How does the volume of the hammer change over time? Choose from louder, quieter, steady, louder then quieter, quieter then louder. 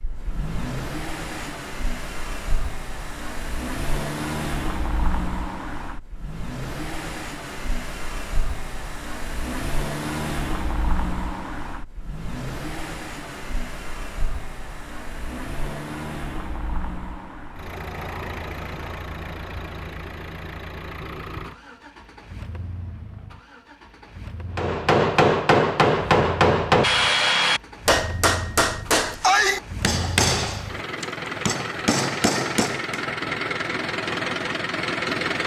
quieter.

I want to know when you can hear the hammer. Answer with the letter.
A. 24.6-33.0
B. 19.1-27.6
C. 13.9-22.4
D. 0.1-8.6
A.